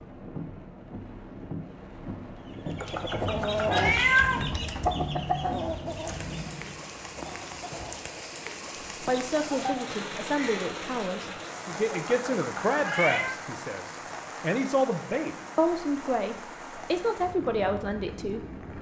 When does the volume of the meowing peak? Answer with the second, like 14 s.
4 s.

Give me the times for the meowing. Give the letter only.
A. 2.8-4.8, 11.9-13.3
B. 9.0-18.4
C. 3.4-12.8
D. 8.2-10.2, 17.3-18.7
A.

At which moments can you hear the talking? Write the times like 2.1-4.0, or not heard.
9.0-18.4.